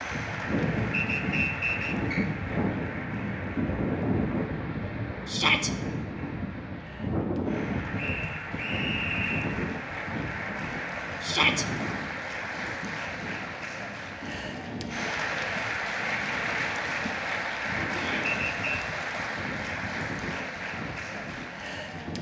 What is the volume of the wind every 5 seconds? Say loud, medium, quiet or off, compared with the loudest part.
loud, loud, medium, medium, medium.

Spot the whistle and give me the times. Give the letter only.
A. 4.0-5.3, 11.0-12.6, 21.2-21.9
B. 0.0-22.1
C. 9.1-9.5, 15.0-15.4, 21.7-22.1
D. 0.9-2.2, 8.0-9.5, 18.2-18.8
D.